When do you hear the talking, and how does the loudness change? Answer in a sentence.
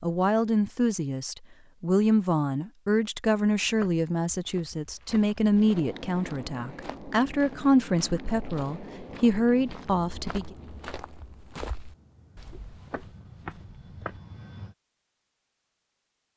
The talking can be heard from 0.0 to 10.6 s, at a steady volume.